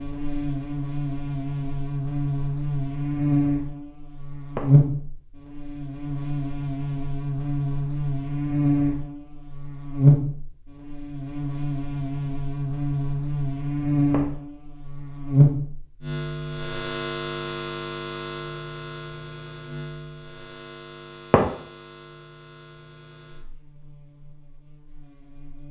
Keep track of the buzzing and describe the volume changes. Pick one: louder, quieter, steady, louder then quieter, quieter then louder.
quieter.